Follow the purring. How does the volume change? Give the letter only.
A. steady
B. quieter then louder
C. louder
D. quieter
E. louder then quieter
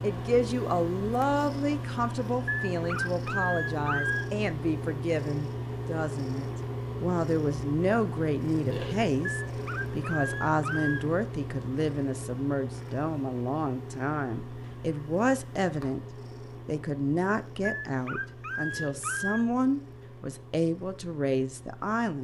D.